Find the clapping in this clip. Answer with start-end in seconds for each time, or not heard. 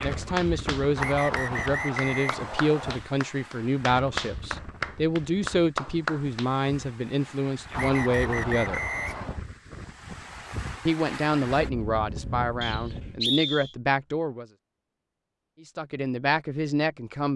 0.0-6.5.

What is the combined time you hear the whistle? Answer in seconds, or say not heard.
5 s.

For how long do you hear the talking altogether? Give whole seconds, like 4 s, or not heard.
14 s.